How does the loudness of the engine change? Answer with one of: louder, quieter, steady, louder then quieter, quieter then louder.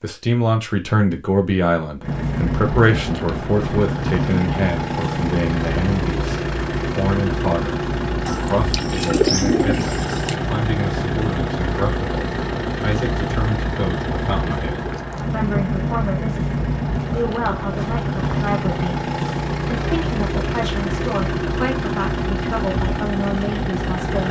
steady.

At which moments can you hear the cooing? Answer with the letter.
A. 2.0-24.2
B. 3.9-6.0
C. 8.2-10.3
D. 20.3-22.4
C.